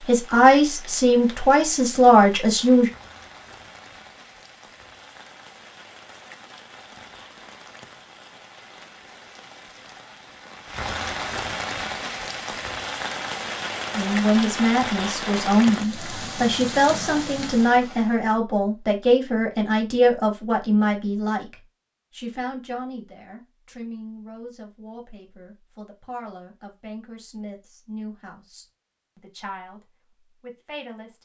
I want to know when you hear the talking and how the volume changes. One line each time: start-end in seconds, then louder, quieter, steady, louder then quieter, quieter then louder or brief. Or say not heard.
0.1-2.9 brief
13.9-31.1 quieter.